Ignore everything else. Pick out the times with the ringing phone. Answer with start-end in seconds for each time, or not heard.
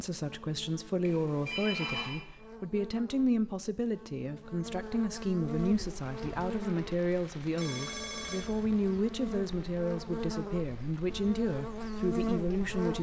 1.0-2.2, 7.5-8.5.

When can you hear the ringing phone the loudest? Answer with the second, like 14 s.
2 s.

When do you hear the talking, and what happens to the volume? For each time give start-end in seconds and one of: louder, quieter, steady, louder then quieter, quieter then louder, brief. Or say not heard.
0.0-12.9 steady.